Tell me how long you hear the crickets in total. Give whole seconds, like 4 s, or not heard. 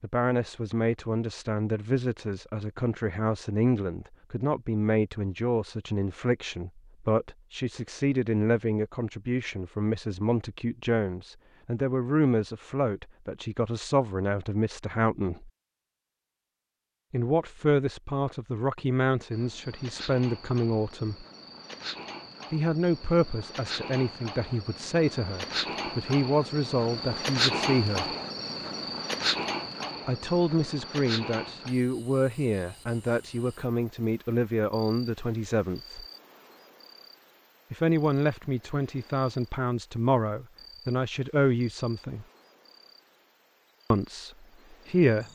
26 s.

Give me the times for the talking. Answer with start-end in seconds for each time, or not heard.
0.0-15.5, 17.1-21.2, 22.5-28.1, 30.1-36.0, 37.7-42.2, 43.9-45.2.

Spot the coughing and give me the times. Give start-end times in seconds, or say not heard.
not heard.